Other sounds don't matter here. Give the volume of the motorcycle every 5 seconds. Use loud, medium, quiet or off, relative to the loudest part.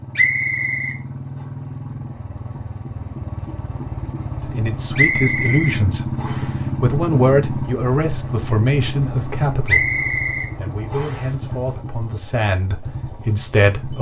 medium, loud, medium.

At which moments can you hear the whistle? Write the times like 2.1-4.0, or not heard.
0.1-1.0, 5.0-6.5, 9.7-11.2.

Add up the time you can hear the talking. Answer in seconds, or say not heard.
9 s.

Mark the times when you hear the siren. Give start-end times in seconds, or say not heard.
not heard.